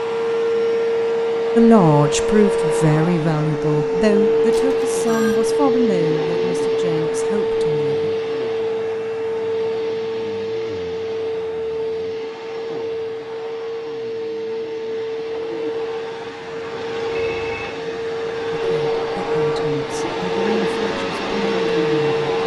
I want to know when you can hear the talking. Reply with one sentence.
The talking can be heard from 1.6 to 8.1 s and from 18.6 to 22.4 s.